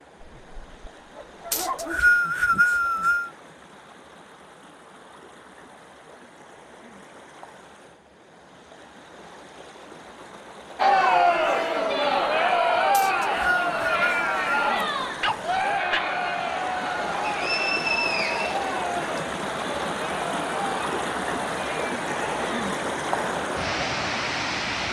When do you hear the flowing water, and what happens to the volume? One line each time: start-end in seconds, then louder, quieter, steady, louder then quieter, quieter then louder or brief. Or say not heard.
0.0-24.8 louder.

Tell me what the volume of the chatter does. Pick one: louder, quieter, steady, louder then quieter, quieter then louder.
quieter.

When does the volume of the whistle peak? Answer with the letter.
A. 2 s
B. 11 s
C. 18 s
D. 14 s
A.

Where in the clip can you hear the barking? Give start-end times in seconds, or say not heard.
0.2-2.2, 15.2-16.1.